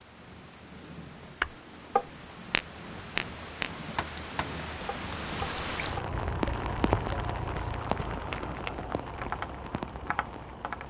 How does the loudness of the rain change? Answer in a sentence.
The volume of the rain goes up, then down.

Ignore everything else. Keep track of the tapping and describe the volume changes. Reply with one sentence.
The loudness of the tapping goes down.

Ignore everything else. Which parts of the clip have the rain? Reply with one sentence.
The rain can be heard from 0.0 to 10.8 s.